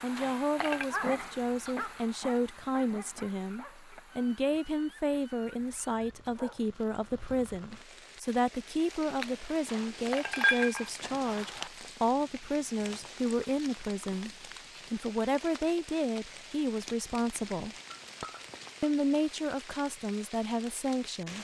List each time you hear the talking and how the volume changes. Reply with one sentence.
You can hear the talking from 0.0 to 17.8 s, at a steady volume; and briefly from 18.8 to 21.3 s.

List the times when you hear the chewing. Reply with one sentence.
You can't hear the chewing here.